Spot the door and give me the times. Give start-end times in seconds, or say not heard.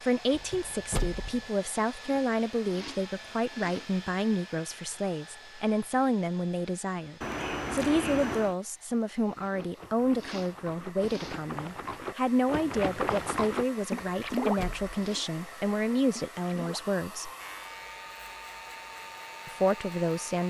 0.3-1.4, 7.2-8.6, 14.1-14.9.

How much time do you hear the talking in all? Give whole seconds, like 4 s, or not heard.
18 s.